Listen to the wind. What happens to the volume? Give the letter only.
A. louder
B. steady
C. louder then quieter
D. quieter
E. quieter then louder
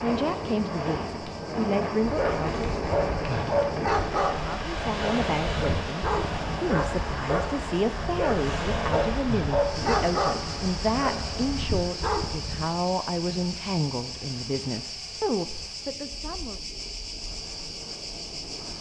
D.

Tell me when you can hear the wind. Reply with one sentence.
The wind can be heard from 0.0 to 18.7 s.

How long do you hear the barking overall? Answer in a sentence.
You can hear the barking for 11 seconds altogether.